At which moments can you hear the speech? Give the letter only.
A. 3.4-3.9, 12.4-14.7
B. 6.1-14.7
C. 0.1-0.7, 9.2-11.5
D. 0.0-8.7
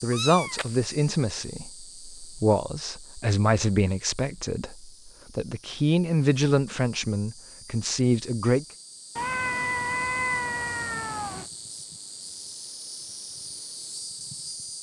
D.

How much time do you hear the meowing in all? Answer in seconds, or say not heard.
3 s.